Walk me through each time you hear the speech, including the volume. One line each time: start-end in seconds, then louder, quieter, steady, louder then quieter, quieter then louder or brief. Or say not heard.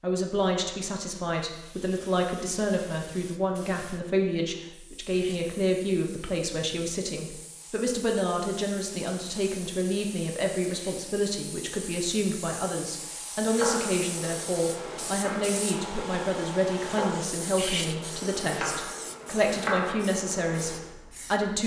0.0-21.6 steady.